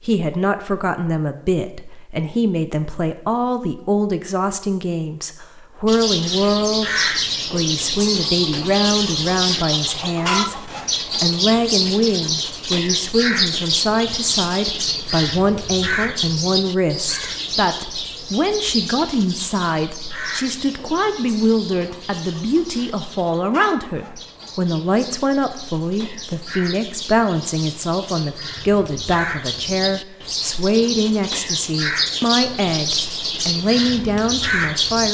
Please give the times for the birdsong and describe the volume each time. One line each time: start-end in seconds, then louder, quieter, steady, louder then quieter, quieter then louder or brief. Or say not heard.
5.8-35.1 quieter then louder.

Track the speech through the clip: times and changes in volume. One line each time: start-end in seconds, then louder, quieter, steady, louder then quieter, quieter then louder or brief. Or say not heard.
0.0-35.1 steady.